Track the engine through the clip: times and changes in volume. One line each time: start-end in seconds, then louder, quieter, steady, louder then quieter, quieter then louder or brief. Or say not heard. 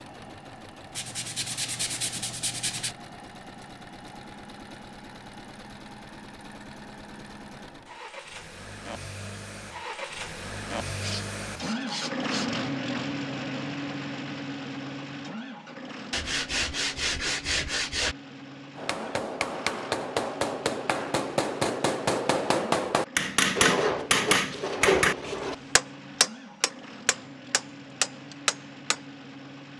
0.0-29.7 louder then quieter.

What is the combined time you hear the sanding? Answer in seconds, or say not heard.
8 s.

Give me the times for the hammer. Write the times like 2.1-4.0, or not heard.
18.8-29.0.